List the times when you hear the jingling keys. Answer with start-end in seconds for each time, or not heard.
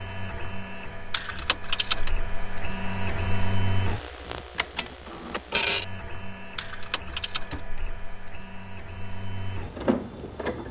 1.1-2.1, 6.5-7.7.